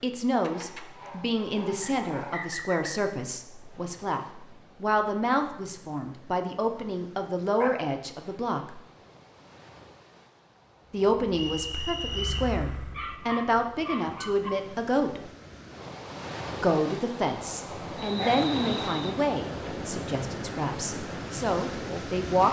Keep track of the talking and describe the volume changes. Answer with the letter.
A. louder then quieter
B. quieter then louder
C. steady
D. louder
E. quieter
C.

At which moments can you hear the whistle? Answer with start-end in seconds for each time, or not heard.
1.8-3.0, 11.3-12.3, 18.0-19.1.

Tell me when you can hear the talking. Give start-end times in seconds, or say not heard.
0.0-4.2, 4.8-8.8, 10.9-15.2, 16.6-22.4.